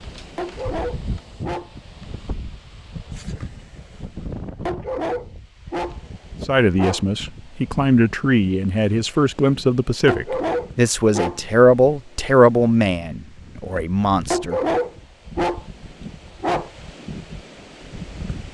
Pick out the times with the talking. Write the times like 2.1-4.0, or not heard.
6.5-14.6.